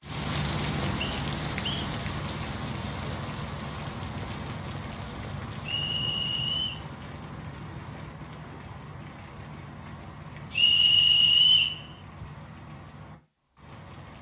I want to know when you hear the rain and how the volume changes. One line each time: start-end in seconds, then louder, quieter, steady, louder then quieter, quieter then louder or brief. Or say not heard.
0.0-14.1 quieter.